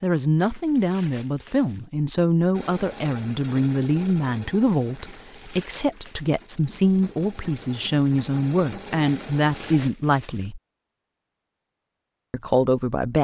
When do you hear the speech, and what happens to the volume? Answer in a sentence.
The speech can be heard from 0.0 to 10.6 s, at a steady volume; and briefly from 12.3 to 13.1 s.